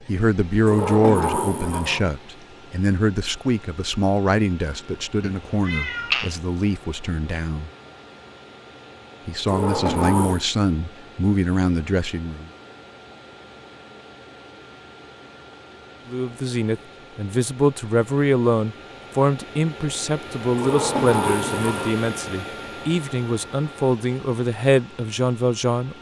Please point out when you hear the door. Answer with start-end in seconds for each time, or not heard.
0.7-2.1, 9.4-10.4, 20.6-22.0.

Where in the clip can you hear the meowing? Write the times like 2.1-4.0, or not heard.
5.2-6.3.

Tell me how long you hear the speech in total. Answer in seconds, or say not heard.
21 s.